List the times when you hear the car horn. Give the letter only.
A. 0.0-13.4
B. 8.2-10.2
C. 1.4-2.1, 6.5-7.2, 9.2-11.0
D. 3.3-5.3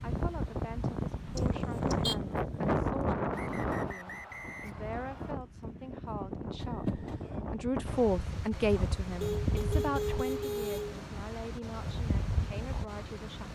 C.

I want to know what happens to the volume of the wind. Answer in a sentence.
The loudness of the wind goes down.